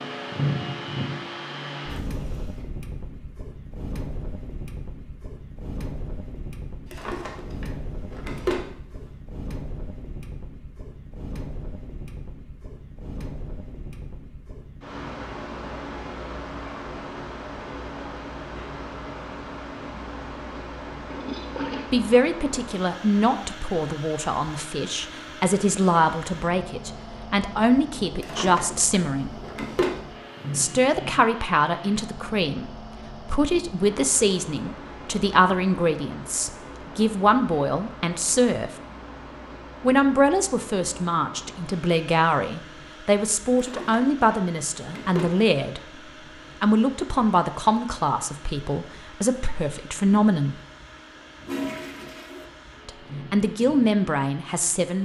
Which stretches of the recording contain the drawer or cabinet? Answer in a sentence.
The drawer or cabinet can be heard from 6.9 to 8.7 s, from 28.2 to 29.9 s and from 43.5 to 45.3 s.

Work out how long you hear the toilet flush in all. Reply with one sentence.
The toilet flush can be heard for 3 seconds in total.